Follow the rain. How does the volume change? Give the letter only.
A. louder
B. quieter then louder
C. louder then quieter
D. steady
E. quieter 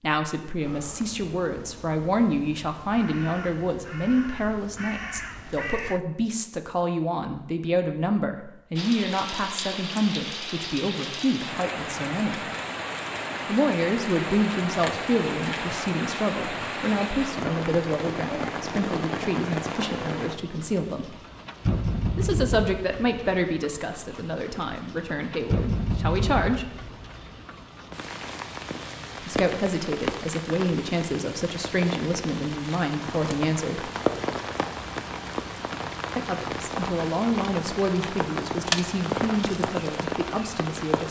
D.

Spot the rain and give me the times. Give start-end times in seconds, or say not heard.
8.8-41.0.